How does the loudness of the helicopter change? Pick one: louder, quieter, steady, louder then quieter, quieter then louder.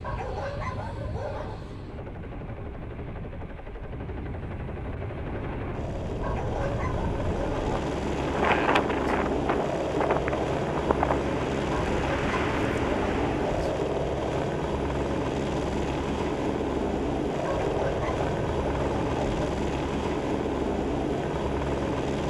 louder.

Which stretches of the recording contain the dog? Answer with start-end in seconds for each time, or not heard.
0.0-1.6, 6.2-7.8, 11.7-13.7, 17.4-19.4.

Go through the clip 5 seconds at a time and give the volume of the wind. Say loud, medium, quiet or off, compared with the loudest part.
medium, loud, loud, off, off.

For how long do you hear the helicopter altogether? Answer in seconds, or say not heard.
22 s.